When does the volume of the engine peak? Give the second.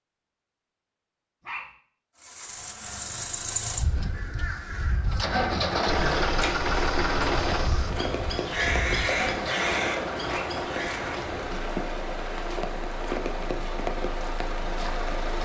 6 s.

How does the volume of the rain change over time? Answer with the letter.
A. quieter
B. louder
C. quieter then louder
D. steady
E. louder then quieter
D.